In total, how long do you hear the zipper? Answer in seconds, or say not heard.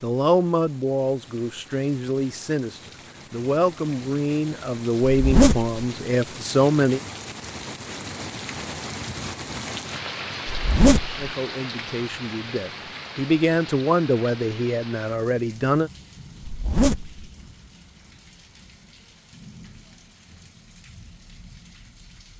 2 s.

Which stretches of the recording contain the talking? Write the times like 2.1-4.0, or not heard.
0.0-7.0, 11.2-15.9.